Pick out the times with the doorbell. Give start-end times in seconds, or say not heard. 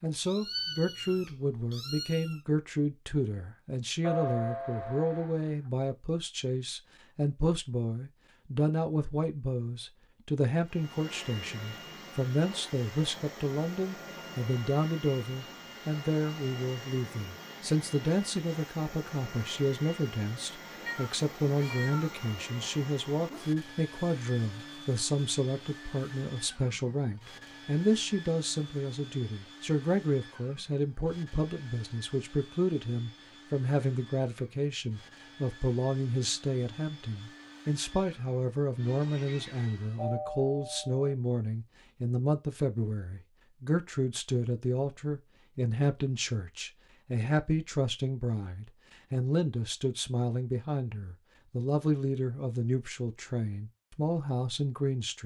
4.0-5.4, 40.0-41.1.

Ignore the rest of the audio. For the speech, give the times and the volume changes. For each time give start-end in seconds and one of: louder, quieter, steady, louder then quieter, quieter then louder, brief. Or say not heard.
0.0-55.2 steady.